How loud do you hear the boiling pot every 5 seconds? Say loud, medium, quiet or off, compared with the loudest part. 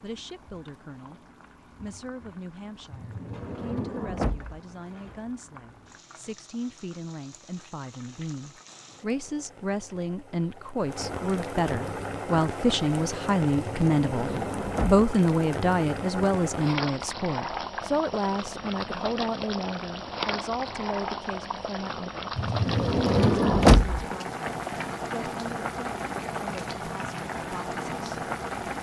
quiet, quiet, loud, loud, loud, loud.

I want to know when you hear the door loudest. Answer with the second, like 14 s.
24 s.